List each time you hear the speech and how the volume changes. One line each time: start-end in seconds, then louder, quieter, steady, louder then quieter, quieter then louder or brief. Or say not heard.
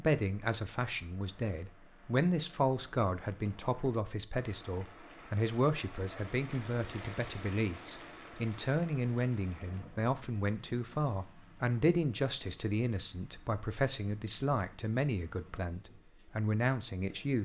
0.0-17.4 steady.